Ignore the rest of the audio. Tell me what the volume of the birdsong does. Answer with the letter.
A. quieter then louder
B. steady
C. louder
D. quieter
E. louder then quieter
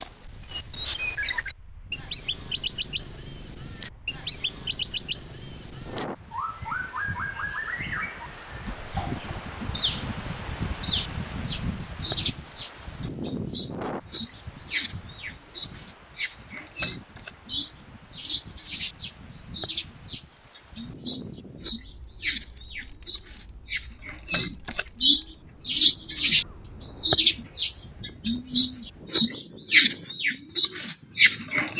C.